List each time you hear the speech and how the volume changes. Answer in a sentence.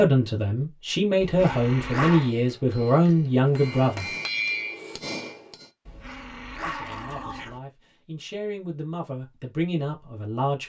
You can hear the speech from 0.0 to 4.1 s, getting louder; and from 6.6 to 10.6 s, getting louder.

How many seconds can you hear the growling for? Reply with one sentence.
The growling can be heard for 3 seconds in total.